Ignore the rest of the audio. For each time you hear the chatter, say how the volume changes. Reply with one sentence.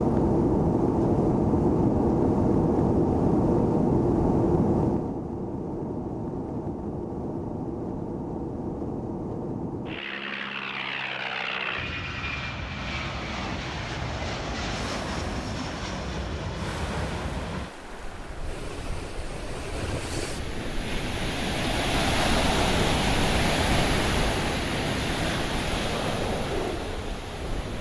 You can't hear the chatter here.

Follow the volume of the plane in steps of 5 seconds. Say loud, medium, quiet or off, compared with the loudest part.
loud, medium, medium, quiet, quiet, quiet.